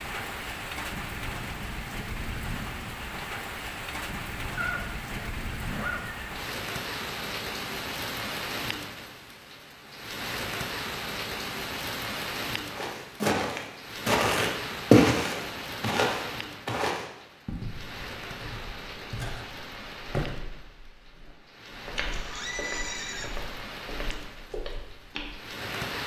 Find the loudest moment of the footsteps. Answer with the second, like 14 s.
15 s.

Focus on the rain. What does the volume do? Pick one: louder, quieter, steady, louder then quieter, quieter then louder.
quieter.